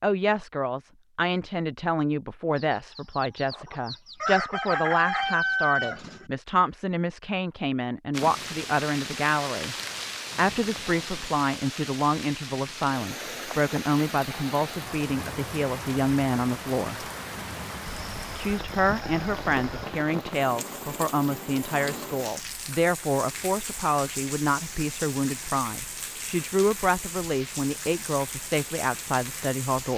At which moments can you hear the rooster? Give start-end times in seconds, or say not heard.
2.5-6.2, 17.9-19.9.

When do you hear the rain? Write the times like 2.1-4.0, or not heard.
8.1-29.9.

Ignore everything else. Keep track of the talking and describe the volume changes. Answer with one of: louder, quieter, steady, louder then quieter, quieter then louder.
steady.